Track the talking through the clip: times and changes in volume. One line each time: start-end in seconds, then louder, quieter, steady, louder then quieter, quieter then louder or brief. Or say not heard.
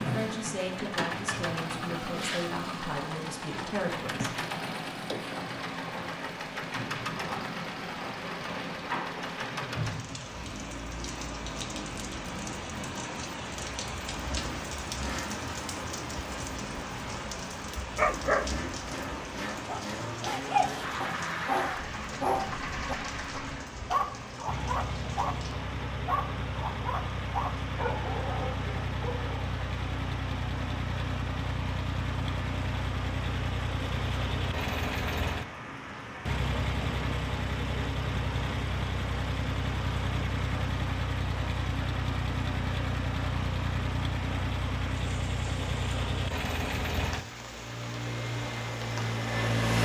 0.0-4.3 steady.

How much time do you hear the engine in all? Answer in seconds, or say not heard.
50 s.